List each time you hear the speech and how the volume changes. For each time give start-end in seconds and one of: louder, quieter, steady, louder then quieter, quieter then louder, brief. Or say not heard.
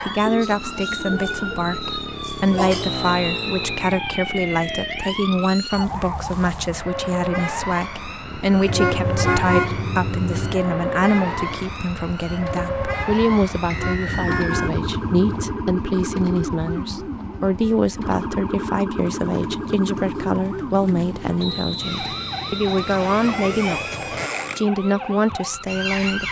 0.1-26.2 steady.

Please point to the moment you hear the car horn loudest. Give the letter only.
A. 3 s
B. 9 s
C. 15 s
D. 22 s
B.